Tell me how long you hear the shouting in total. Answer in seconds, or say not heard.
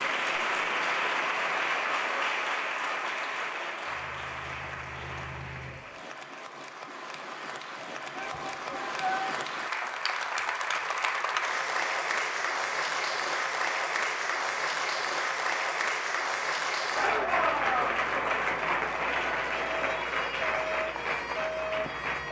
2 s.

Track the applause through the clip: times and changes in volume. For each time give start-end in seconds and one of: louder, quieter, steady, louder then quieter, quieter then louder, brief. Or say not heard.
0.0-22.2 quieter then louder.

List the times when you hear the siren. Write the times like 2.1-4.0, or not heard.
19.1-22.2.